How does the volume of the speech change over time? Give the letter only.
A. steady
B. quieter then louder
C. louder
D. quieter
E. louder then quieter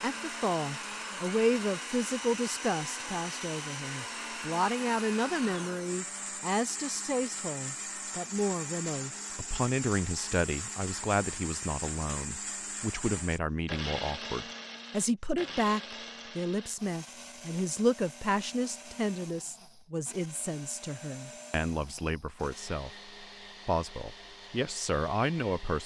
A.